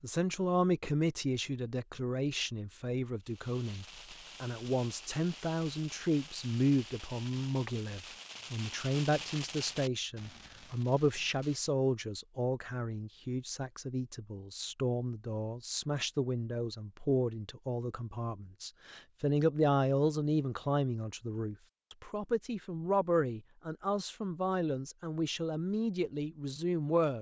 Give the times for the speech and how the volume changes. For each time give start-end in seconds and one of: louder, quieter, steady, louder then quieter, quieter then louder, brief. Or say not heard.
0.0-27.1 steady.